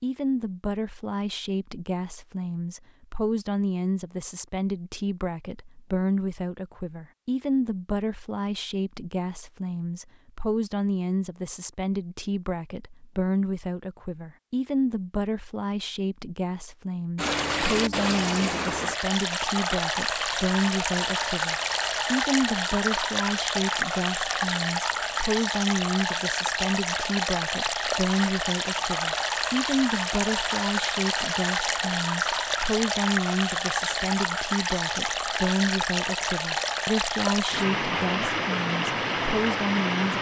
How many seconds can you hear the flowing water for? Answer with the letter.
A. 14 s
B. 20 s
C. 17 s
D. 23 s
D.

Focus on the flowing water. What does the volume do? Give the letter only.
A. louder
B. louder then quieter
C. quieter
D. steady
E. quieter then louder
D.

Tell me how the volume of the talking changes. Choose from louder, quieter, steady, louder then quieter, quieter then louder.
steady.